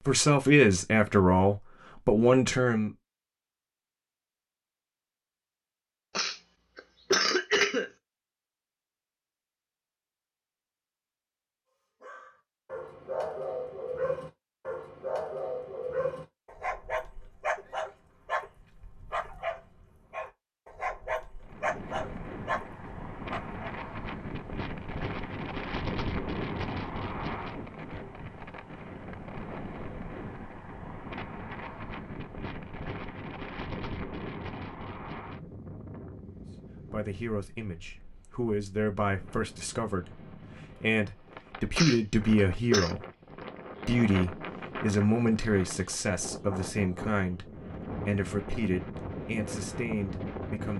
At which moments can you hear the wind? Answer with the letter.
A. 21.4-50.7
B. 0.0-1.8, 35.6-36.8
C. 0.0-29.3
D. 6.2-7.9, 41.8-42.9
A.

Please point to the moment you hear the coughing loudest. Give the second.
7 s.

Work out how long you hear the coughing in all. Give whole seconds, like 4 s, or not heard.
3 s.